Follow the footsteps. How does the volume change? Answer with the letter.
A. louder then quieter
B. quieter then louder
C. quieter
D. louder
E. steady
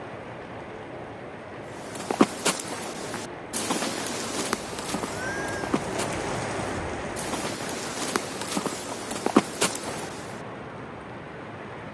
B.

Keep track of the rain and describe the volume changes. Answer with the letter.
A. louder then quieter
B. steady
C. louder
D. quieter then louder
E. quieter
A.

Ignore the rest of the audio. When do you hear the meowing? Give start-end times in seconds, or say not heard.
5.1-5.8.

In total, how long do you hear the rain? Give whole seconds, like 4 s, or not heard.
12 s.